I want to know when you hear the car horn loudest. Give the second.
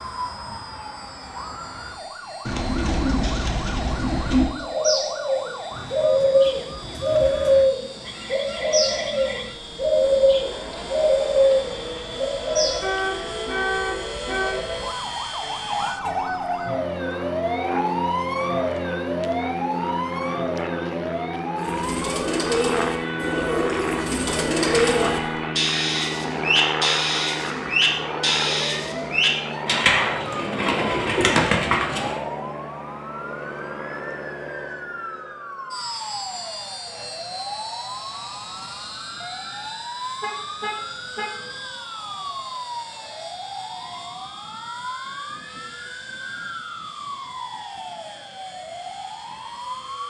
14 s.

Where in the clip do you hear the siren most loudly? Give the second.
18 s.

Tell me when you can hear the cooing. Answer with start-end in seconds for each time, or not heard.
2.5-12.8, 21.6-32.2.